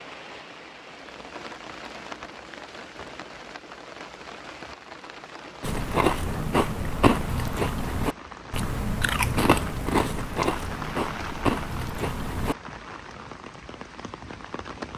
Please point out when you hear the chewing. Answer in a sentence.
The chewing can be heard from 5.6 to 12.6 s.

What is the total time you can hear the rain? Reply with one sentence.
The rain can be heard for 15 seconds in total.